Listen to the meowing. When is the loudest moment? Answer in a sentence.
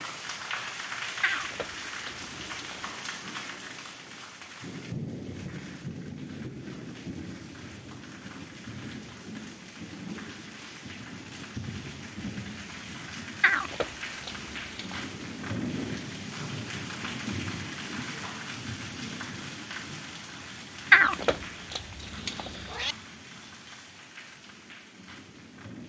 The loudest moment of the meowing is at 21 seconds.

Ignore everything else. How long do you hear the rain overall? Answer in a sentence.
You can hear the rain for 26 seconds altogether.